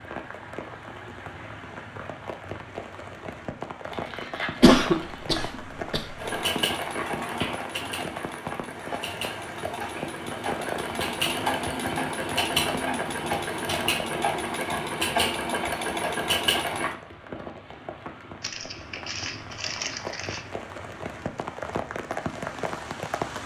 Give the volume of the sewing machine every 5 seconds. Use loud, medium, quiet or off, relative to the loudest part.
off, medium, loud, loud, off.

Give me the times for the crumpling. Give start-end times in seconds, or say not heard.
3.8-5.3, 18.4-20.4.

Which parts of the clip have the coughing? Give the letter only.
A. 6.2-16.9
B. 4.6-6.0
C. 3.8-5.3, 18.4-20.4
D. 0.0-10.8
B.